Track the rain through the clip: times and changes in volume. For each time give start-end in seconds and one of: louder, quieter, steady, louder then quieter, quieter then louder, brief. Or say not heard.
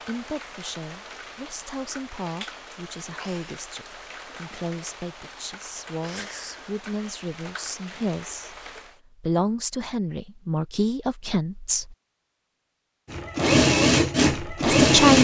0.0-9.0 steady.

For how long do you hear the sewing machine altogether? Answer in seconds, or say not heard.
2 s.